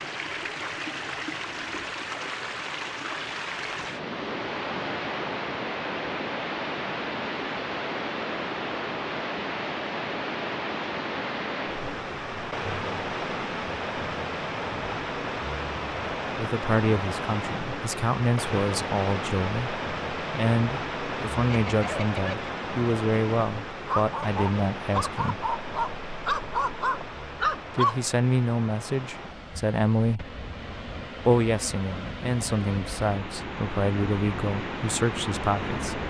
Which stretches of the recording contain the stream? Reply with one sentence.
You can hear the stream from 0.0 to 36.0 s.